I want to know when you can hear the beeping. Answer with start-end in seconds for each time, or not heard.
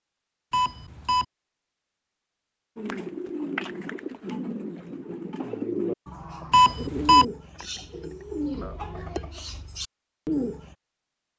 0.5-1.2, 6.5-7.2.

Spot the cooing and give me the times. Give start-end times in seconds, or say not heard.
2.8-10.8.